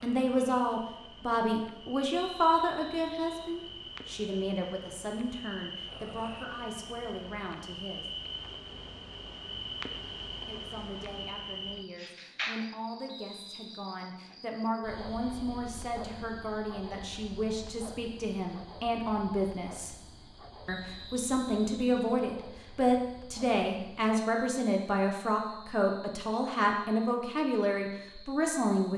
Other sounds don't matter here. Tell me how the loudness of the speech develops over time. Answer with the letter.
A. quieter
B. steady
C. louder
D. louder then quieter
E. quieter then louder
E.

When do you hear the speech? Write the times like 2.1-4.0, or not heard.
0.0-8.1, 10.4-19.9, 20.6-28.9.